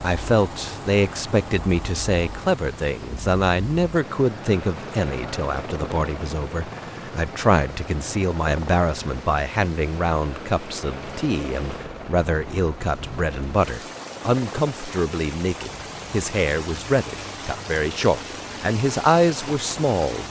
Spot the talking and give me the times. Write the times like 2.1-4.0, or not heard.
0.0-20.2.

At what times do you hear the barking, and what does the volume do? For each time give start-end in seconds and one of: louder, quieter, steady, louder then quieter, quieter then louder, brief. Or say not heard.
not heard.